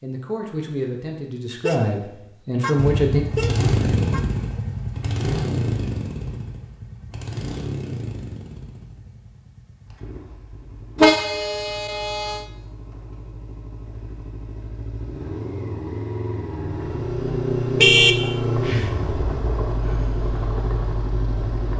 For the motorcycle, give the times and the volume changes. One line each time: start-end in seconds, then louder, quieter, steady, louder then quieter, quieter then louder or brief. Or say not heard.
2.8-21.7 quieter then louder.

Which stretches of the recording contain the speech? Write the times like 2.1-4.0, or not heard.
0.0-3.2.